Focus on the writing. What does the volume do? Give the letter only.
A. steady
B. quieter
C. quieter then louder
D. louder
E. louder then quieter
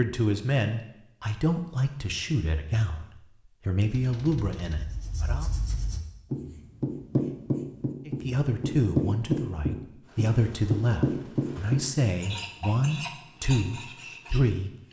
E.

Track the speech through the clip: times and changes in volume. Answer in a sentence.
You can hear the speech from 0.0 to 5.5 s, at a steady volume; and from 8.1 to 14.7 s, at a steady volume.